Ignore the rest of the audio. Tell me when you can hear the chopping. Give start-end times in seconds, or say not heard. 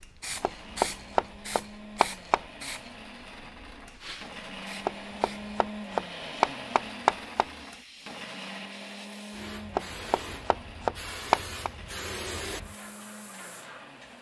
0.4-2.4, 4.8-7.5, 9.8-11.7.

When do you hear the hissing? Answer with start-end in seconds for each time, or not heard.
0.0-14.1.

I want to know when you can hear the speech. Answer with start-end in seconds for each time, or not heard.
not heard.